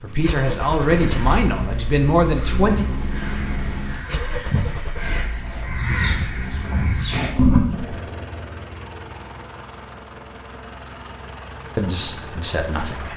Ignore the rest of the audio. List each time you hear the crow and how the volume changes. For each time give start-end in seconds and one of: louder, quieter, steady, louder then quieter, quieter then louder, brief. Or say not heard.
0.8-8.1 louder.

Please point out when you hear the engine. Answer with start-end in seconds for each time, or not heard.
0.0-13.1.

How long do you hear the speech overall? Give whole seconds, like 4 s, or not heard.
4 s.